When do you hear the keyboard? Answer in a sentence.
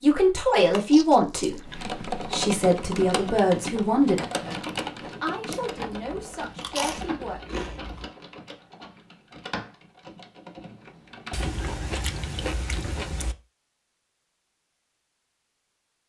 You can hear the keyboard from 1.6 to 11.8 s.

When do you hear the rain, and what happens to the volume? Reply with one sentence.
The rain can't be heard in this clip.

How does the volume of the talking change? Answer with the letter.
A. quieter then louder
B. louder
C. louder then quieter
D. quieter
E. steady
D.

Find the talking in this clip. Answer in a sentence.
The talking can be heard from 0.0 to 7.4 s.